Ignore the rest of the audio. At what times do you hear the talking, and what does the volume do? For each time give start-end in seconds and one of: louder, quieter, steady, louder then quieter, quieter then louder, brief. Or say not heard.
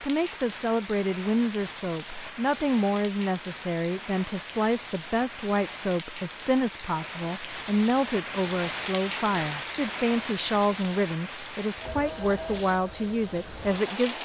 0.0-14.2 steady.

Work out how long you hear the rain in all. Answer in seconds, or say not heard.
14 s.